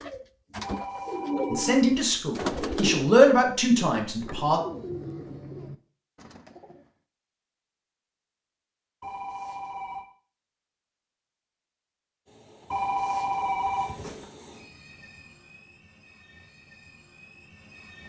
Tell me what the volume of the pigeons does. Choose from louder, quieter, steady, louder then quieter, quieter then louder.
quieter.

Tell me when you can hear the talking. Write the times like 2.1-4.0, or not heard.
1.5-4.6.